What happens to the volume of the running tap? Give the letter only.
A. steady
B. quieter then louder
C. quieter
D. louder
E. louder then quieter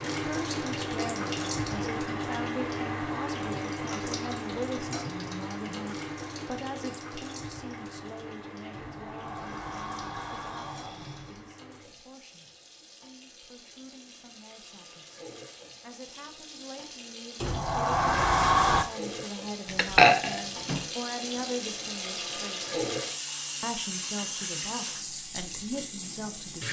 B.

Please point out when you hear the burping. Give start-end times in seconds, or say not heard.
19.8-20.8.